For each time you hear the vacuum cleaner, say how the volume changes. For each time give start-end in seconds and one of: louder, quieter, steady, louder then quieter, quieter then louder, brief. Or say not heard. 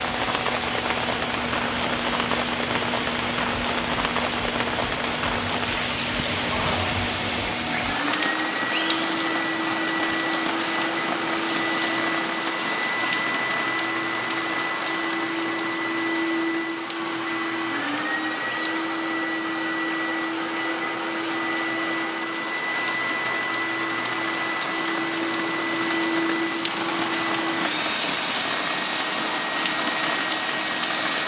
0.0-31.2 steady.